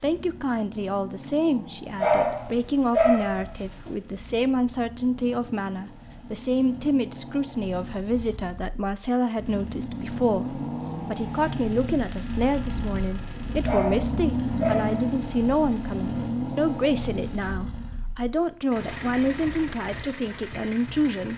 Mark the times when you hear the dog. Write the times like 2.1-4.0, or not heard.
2.0-4.0, 13.7-15.2.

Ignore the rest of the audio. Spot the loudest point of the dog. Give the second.
2 s.